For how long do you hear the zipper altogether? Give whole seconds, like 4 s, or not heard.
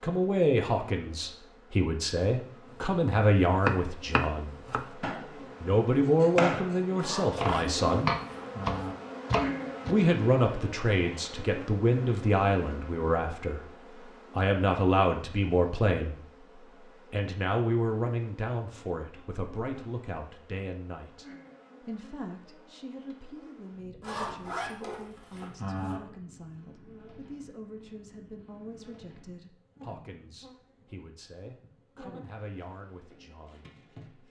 4 s.